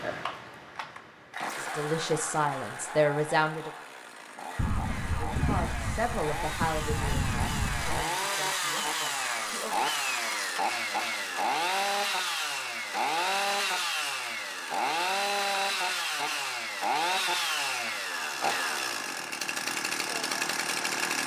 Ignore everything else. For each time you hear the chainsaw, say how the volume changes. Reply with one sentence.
You can hear the chainsaw from 0.0 to 21.2 s, getting louder.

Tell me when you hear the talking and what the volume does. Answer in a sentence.
The talking can be heard briefly from 1.6 to 3.7 s; and from 5.2 to 9.9 s, getting quieter.